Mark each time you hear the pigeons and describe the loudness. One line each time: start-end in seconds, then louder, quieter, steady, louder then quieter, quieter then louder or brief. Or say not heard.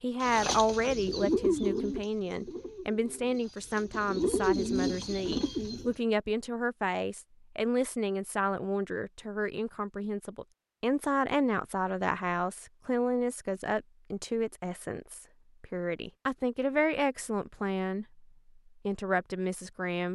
0.2-6.0 quieter then louder.